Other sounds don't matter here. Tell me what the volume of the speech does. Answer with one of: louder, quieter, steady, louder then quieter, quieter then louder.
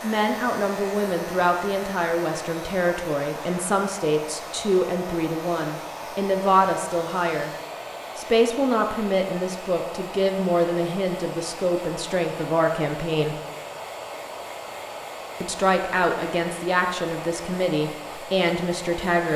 steady.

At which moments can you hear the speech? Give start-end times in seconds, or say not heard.
0.0-7.5, 8.2-13.3, 15.4-19.3.